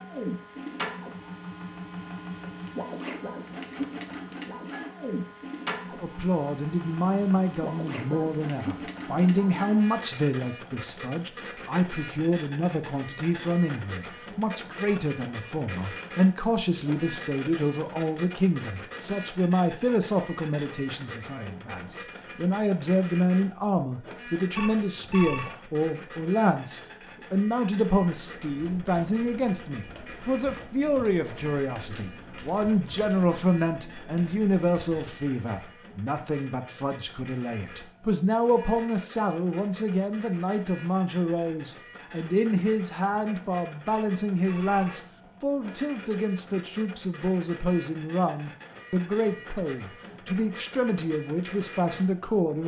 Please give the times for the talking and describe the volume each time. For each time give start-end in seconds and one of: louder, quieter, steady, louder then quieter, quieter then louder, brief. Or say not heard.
6.0-52.6 steady.